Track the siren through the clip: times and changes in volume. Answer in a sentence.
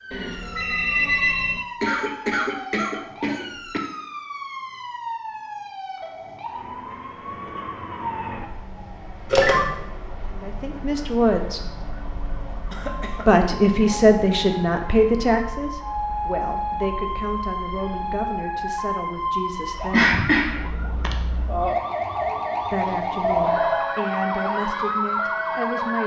You can hear the siren from 0.0 to 26.0 s, getting louder.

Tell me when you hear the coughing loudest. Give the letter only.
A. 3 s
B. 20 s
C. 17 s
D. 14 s
B.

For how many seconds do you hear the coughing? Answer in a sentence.
You can hear the coughing for 4 seconds altogether.